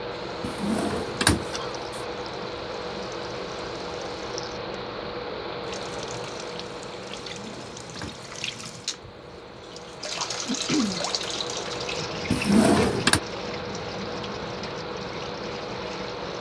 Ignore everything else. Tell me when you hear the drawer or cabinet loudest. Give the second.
13 s.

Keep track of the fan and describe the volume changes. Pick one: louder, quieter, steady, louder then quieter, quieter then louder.
quieter then louder.